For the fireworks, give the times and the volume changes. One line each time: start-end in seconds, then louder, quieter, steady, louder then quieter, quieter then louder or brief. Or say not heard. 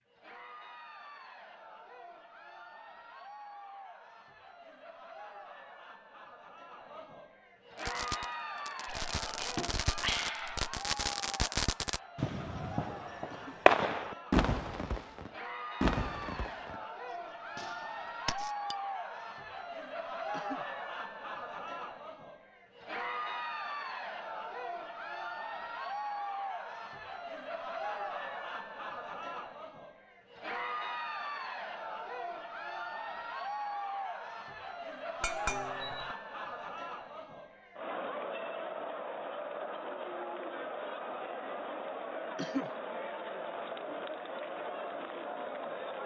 7.8-18.5 louder then quieter.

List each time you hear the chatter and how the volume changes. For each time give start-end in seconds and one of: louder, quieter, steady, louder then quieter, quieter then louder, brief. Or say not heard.
0.1-46.0 louder.